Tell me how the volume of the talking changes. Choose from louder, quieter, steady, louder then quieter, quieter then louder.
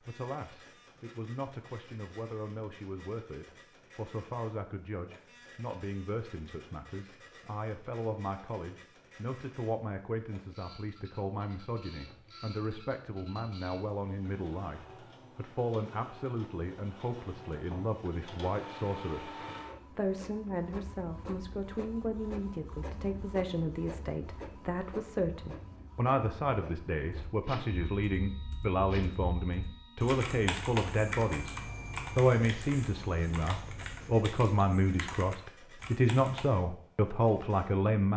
louder.